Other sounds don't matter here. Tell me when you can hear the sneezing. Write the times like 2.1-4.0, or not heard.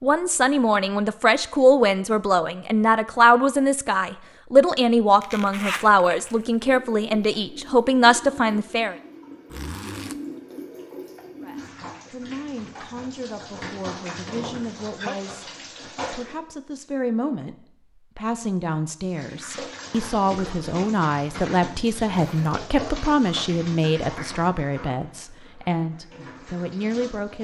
14.2-15.3.